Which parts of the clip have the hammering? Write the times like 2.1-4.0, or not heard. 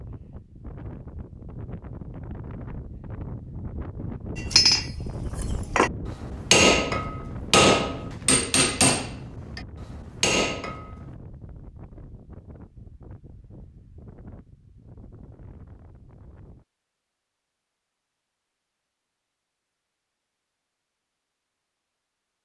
4.3-10.9.